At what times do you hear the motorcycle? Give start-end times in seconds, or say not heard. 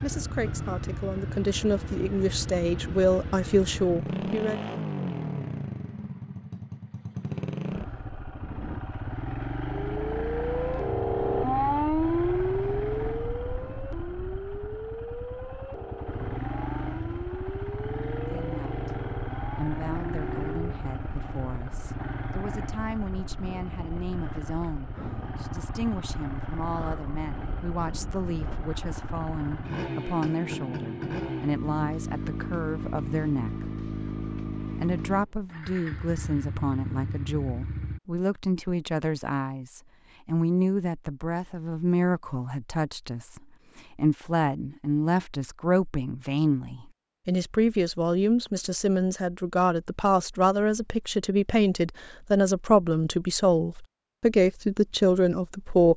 0.0-38.0.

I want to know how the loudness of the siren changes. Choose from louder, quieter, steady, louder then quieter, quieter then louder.
quieter.